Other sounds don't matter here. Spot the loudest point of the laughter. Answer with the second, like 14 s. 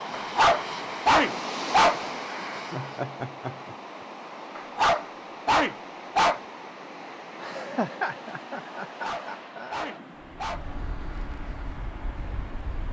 8 s.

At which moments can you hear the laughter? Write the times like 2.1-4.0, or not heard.
2.7-3.8, 7.4-10.0.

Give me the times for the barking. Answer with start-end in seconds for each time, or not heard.
0.1-2.0, 4.5-6.4, 9.0-10.7.